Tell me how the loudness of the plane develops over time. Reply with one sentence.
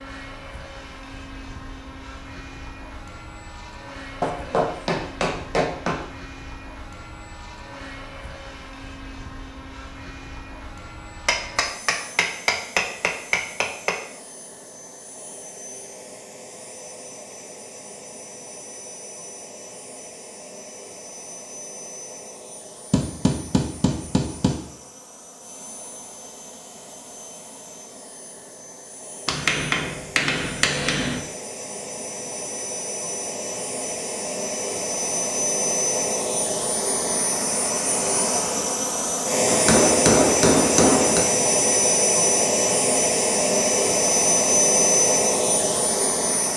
The loudness of the plane goes up.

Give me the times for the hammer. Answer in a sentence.
You can hear the hammer from 4.2 to 6.0 s, from 11.2 to 13.9 s, from 22.9 to 24.6 s, from 29.2 to 31.2 s and from 39.5 to 41.2 s.